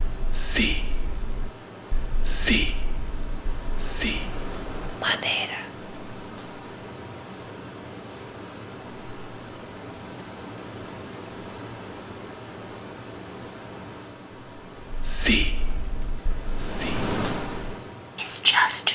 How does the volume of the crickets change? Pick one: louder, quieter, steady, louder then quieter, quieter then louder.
louder.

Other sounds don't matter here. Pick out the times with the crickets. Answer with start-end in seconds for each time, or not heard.
0.0-18.9.